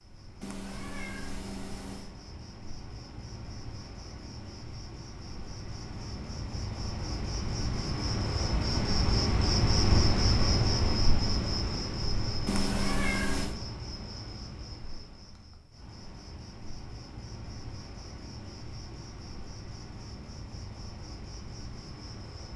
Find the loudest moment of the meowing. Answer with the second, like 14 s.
13 s.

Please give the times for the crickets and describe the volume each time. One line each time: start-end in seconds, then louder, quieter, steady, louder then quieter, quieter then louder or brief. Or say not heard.
0.0-22.5 louder then quieter.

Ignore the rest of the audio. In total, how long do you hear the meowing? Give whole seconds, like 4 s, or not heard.
3 s.